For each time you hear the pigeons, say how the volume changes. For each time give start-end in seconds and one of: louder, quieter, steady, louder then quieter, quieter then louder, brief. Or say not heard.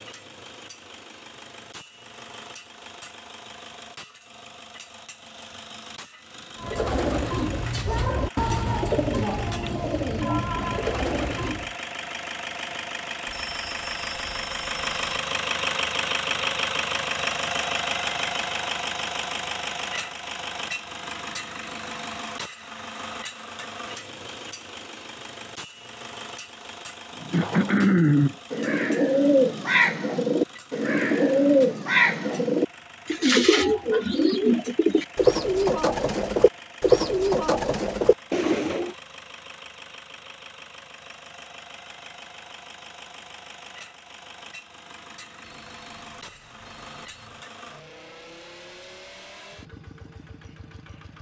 6.5-11.8 steady
27.2-39.0 steady.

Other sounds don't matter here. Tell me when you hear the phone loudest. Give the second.
14 s.